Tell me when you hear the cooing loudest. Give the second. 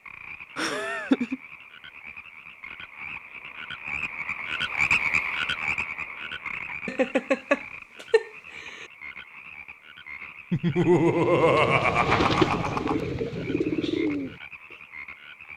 12 s.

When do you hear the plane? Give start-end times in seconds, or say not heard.
not heard.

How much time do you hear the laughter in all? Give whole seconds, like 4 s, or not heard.
5 s.